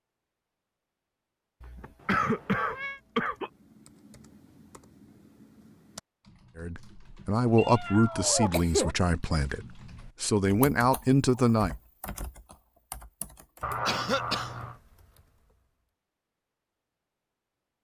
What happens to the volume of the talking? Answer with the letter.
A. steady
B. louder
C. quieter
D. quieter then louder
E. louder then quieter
D.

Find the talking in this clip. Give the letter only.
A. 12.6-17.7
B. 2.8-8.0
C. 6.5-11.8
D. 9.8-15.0
C.